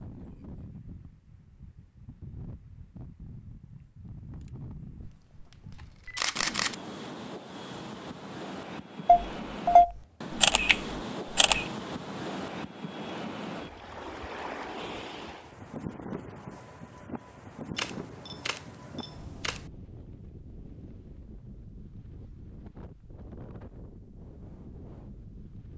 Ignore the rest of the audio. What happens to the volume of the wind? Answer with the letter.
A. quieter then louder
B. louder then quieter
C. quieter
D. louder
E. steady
B.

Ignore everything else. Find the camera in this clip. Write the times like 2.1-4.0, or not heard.
5.0-6.8, 9.1-11.7, 17.8-19.7.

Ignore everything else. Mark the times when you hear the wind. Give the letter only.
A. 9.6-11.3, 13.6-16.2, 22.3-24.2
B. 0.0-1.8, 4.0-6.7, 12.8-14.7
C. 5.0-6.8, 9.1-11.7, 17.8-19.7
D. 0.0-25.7
D.